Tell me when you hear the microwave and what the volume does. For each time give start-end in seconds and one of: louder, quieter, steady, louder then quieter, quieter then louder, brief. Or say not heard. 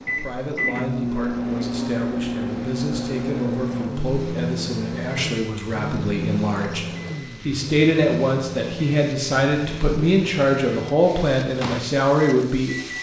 0.0-12.9 quieter.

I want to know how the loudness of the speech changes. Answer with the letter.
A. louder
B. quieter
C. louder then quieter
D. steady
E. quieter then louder
A.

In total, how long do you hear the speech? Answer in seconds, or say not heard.
13 s.